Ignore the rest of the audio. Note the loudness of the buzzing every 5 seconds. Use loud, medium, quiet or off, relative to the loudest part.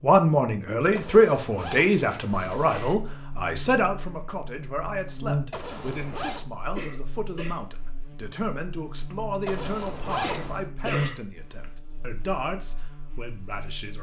medium, loud, loud.